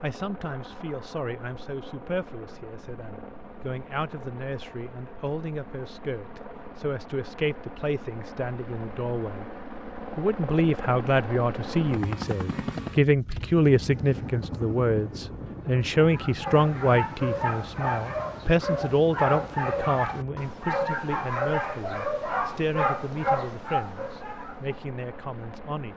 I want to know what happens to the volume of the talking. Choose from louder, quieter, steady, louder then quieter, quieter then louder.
louder then quieter.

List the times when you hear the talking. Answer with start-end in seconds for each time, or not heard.
0.0-9.4, 10.2-25.9.